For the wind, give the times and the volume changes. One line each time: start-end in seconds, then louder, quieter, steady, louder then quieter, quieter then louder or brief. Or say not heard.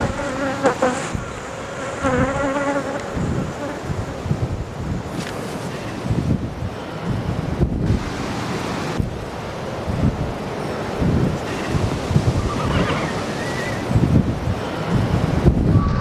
0.0-15.9 louder.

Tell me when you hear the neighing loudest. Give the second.
13 s.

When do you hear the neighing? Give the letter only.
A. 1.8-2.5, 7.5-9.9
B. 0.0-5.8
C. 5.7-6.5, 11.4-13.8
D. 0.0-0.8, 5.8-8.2
C.